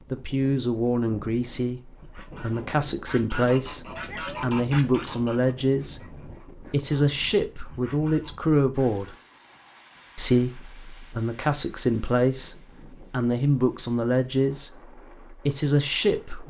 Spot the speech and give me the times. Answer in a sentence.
The speech can be heard from 0.1 to 9.2 s and from 10.2 to 16.4 s.